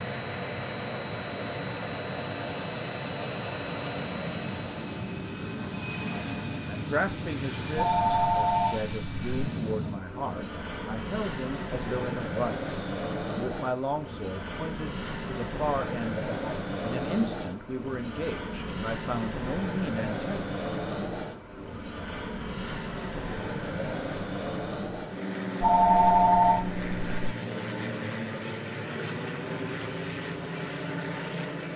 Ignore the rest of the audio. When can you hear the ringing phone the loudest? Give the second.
26 s.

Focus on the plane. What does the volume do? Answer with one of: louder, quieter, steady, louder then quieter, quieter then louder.
steady.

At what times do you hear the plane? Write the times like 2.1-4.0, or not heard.
0.0-31.7.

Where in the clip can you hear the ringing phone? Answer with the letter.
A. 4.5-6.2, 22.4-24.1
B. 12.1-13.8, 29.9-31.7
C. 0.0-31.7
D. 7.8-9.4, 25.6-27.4
D.